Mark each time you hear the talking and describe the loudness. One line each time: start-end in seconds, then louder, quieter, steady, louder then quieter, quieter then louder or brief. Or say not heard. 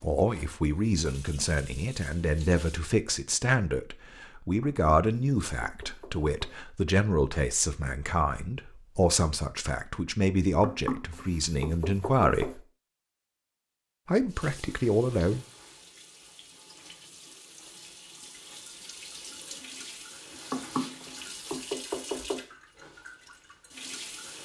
0.0-12.6 steady
14.1-15.4 brief.